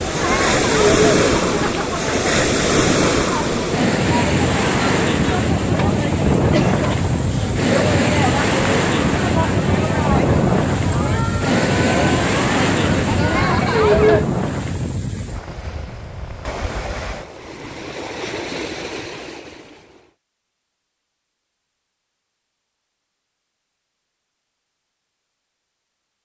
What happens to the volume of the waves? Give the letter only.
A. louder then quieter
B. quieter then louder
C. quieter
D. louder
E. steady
C.